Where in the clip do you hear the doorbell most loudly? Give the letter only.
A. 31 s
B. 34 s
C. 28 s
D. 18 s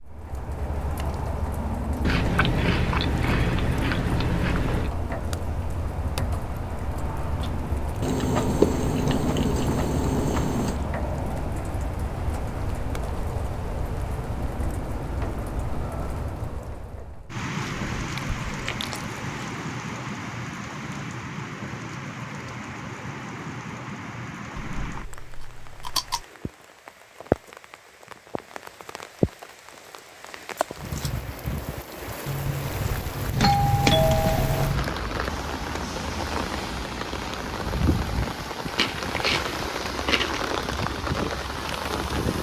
B.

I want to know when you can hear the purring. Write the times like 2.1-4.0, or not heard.
not heard.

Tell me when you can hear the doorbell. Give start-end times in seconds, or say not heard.
32.2-34.9.